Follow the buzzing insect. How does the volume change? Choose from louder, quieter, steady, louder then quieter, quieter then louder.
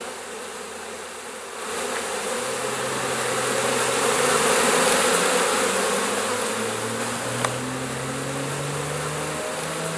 louder then quieter.